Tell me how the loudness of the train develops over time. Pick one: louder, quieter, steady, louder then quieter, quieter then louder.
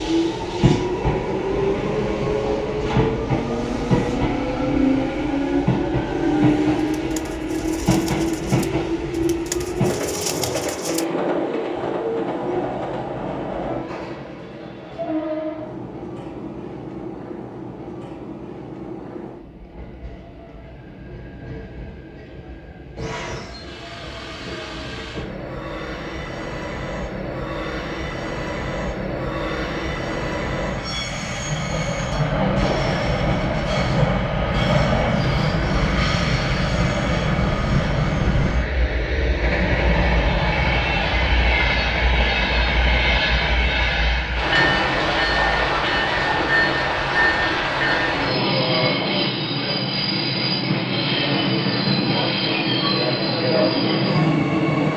quieter then louder.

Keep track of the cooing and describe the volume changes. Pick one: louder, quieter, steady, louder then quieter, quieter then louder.
louder.